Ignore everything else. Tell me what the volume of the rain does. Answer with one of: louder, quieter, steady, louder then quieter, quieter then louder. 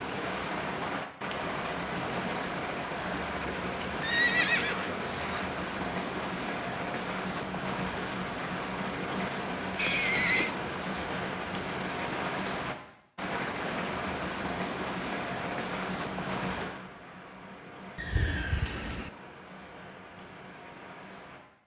quieter.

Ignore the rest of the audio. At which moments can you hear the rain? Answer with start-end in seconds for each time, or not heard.
0.0-21.4.